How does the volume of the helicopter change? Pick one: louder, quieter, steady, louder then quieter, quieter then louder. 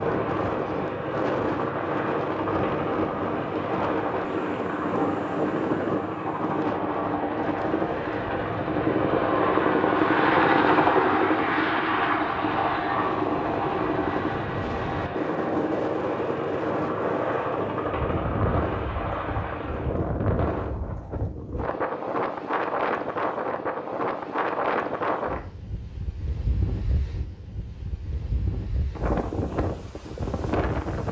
louder then quieter.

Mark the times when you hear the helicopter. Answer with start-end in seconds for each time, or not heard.
0.0-20.1.